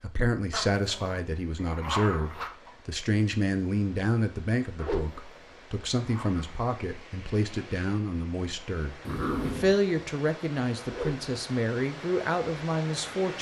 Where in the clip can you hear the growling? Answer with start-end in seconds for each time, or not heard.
0.5-2.5, 4.8-6.5, 9.1-9.8.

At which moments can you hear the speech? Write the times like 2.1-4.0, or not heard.
0.0-13.3.